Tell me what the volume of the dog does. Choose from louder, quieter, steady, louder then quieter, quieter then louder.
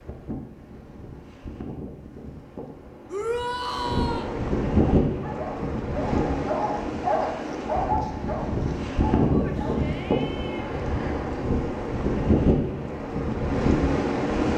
louder then quieter.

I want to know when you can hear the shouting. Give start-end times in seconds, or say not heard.
3.0-4.3, 9.3-10.8.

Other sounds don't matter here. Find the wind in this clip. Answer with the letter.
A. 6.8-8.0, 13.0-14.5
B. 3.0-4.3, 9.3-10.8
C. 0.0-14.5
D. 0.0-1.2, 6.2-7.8
C.